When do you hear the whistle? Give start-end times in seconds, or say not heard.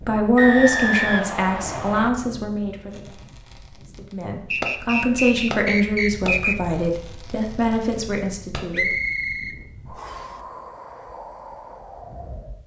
0.3-2.1, 4.5-6.5, 8.7-10.3.